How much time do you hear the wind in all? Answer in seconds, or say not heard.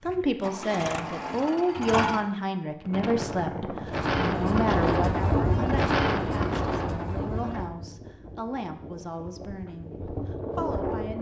8 s.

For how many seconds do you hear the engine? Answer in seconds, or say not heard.
2 s.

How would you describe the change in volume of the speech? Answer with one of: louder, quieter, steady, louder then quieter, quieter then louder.
quieter.